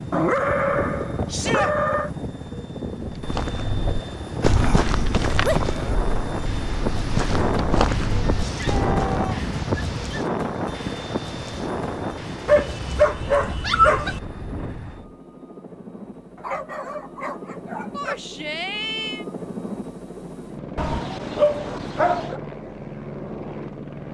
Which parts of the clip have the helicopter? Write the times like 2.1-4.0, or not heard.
0.0-24.0.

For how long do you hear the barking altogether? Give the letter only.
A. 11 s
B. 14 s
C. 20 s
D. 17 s
A.